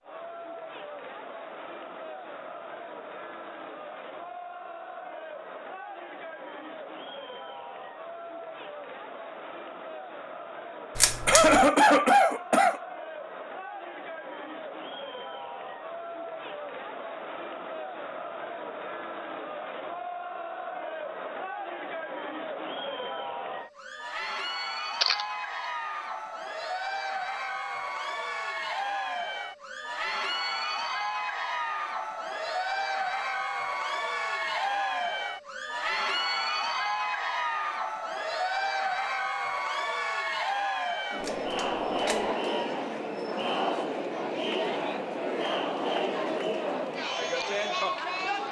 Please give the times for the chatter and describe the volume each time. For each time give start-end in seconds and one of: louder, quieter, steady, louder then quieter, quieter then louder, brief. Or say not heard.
0.0-48.4 louder.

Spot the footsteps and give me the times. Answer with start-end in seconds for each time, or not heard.
not heard.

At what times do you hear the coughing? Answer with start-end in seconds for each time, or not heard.
11.2-12.8.